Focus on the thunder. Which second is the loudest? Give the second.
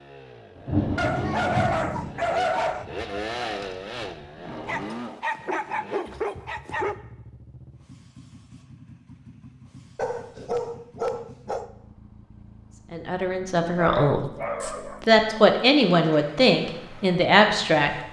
1 s.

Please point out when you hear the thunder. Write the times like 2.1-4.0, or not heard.
0.6-4.5.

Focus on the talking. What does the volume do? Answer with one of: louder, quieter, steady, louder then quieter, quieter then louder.
quieter then louder.